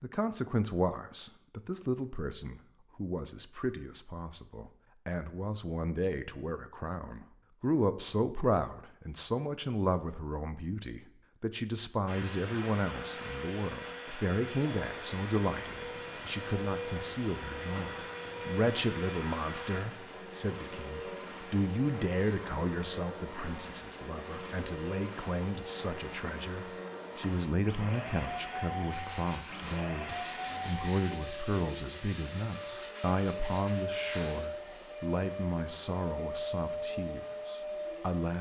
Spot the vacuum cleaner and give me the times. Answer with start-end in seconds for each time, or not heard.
12.1-38.3.